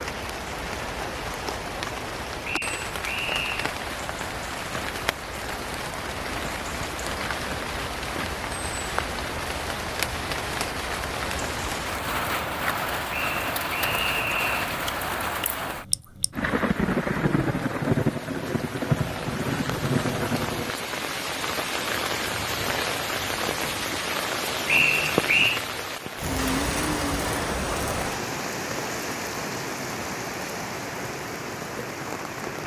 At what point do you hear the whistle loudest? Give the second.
25 s.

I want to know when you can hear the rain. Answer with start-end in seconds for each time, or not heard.
0.0-32.6.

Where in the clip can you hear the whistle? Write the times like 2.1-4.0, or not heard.
2.4-3.7, 13.1-14.8, 24.6-25.6.